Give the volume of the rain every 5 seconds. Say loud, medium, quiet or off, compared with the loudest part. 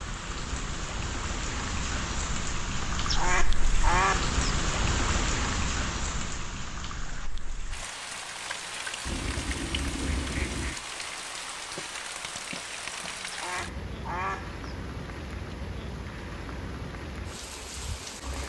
loud, loud, medium, medium.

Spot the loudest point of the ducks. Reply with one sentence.
The loudest moment of the ducks is at 4 seconds.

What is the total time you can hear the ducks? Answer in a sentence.
You can hear the ducks for 5 seconds altogether.